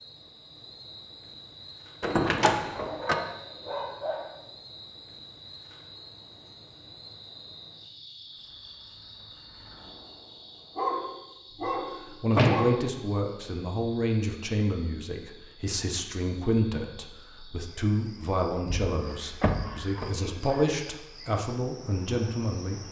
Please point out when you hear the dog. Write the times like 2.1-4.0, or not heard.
2.8-4.3, 10.8-13.1, 19.0-20.8.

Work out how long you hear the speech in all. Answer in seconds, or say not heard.
11 s.